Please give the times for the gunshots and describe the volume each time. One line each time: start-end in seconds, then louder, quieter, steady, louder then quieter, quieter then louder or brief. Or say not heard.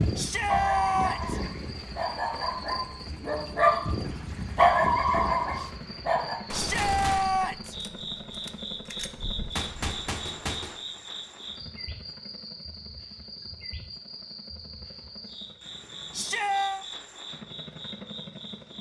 6.5-10.8 quieter then louder.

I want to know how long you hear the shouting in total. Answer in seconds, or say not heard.
3 s.